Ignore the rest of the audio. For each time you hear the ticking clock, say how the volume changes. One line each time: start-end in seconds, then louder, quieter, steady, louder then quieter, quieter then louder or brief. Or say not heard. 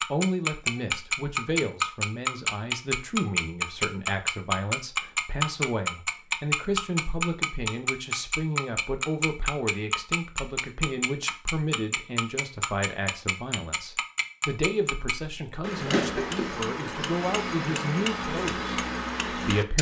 0.0-19.7 quieter.